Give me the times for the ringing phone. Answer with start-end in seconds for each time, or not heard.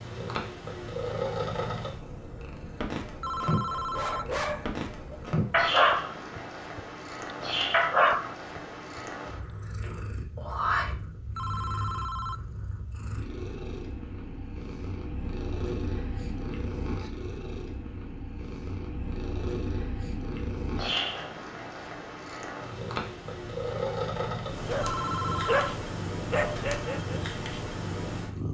3.2-4.2, 11.3-12.4, 24.8-25.8.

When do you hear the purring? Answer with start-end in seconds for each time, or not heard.
0.0-28.5.